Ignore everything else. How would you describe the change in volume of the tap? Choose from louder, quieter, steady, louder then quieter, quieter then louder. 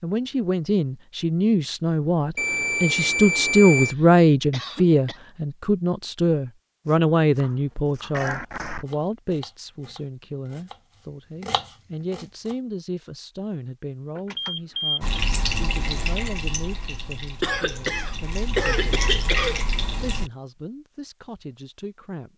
quieter then louder.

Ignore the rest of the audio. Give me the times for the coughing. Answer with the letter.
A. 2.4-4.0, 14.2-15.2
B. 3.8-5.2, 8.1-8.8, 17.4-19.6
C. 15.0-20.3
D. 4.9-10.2
B.